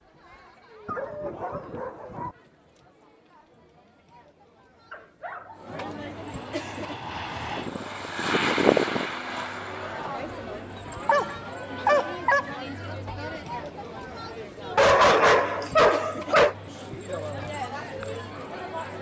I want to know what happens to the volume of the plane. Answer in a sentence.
The volume of the plane goes up, then down.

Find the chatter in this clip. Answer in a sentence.
You can hear the chatter from 0.0 to 18.9 s.